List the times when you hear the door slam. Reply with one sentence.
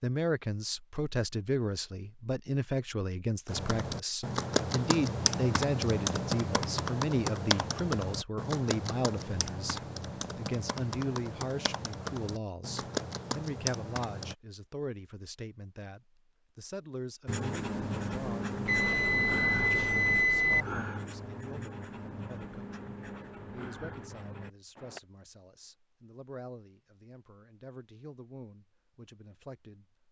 You can't hear the door slam here.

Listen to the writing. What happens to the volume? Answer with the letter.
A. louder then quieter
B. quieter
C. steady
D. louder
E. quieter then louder
B.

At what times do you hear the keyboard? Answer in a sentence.
The keyboard can be heard from 3.5 to 14.3 s.